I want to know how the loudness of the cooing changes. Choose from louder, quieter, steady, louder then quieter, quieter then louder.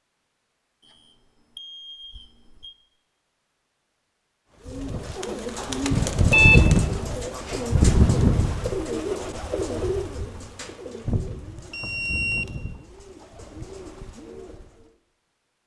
quieter.